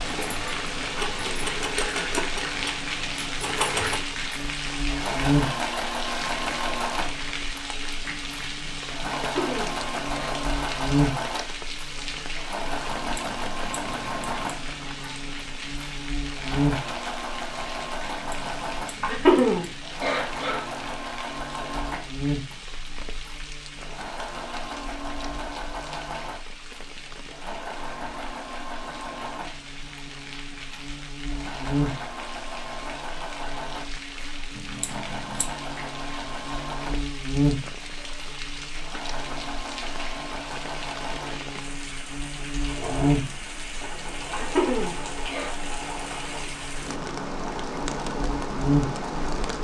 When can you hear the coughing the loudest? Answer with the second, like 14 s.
19 s.